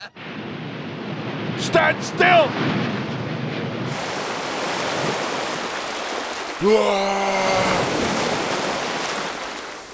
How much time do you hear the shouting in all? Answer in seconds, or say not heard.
2 s.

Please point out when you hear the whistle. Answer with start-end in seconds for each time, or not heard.
not heard.